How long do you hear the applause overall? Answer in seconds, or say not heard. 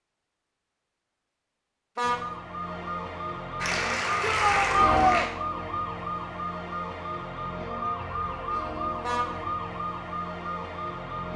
2 s.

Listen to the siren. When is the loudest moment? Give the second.
5 s.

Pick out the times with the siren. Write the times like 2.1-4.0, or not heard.
2.0-11.3.